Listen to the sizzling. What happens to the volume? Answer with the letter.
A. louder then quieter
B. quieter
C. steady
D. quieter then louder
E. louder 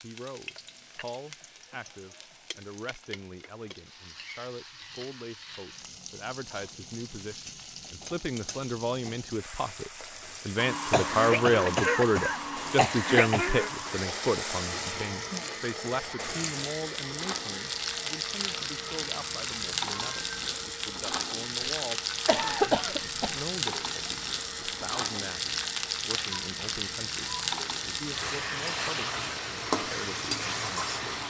E.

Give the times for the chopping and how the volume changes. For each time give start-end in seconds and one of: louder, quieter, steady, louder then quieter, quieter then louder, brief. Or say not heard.
not heard.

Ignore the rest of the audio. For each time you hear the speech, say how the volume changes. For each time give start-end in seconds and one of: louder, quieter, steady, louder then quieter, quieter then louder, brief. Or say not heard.
0.0-31.2 louder then quieter.